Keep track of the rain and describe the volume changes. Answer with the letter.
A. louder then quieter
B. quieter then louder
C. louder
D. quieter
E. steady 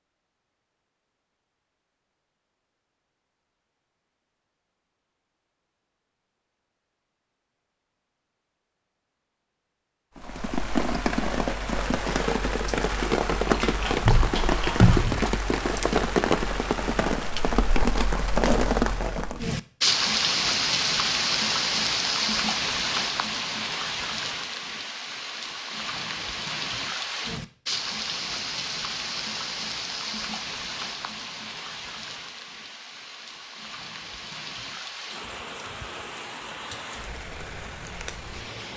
D.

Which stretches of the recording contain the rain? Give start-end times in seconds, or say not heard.
10.2-38.7.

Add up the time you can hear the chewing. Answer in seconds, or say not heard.
2 s.